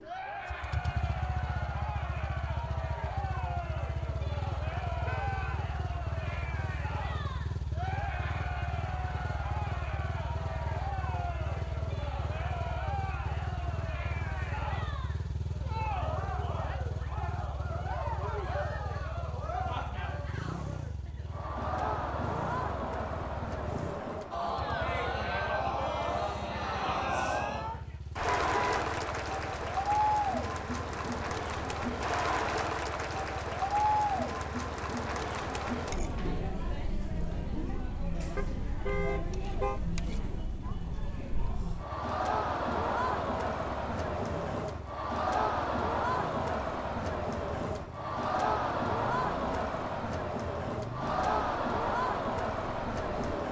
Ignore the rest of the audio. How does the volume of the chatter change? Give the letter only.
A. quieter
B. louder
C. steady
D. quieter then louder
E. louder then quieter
B.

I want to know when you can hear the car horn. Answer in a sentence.
The car horn can be heard from 5.0 to 5.7 s, from 28.2 to 28.9 s and from 38.4 to 39.8 s.